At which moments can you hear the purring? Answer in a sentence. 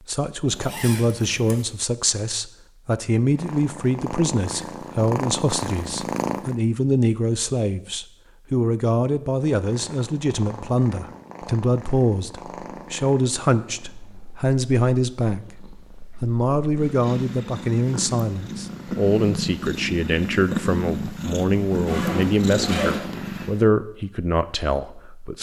The purring can be heard from 3.2 to 6.5 s and from 9.4 to 23.7 s.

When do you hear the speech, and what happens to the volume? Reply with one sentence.
The speech can be heard from 0.1 to 15.6 s, at a steady volume; and from 16.2 to 25.3 s, at a steady volume.